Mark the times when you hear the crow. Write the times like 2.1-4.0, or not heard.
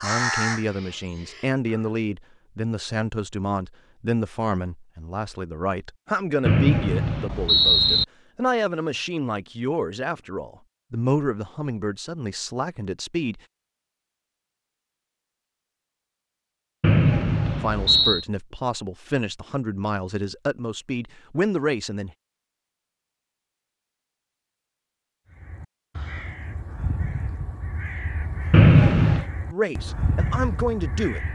0.0-1.9, 25.3-31.2.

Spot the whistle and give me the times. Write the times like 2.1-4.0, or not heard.
6.5-8.1, 16.8-18.2, 28.5-29.2.